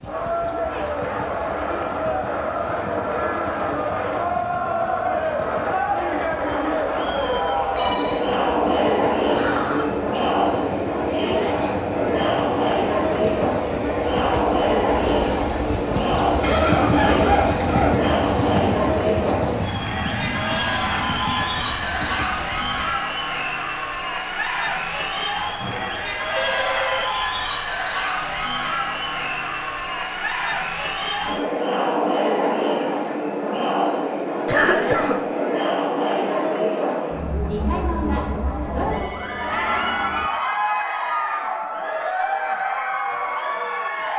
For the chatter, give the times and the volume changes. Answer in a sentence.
You can hear the chatter from 0.0 to 44.1 s, at a steady volume.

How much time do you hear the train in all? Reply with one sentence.
You can hear the train for 23 seconds altogether.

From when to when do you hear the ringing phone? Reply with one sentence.
The ringing phone can be heard from 7.2 to 8.8 s, from 25.6 to 27.1 s and from 38.8 to 40.3 s.